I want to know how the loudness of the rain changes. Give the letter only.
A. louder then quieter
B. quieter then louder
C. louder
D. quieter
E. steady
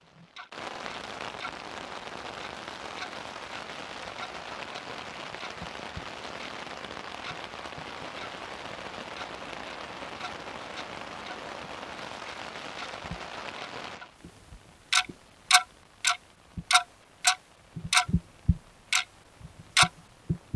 D.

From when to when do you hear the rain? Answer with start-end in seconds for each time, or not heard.
0.0-20.5.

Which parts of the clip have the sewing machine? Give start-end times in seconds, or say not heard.
not heard.